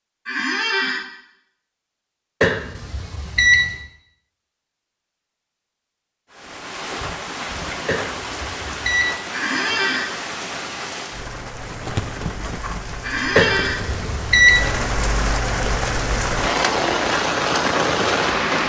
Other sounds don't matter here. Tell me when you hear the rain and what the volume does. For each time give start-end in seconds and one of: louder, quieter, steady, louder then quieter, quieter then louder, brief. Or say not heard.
6.3-18.6 louder.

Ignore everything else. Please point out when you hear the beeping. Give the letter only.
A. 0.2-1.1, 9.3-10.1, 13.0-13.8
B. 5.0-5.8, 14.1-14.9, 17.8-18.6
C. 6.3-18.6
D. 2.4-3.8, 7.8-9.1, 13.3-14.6
D.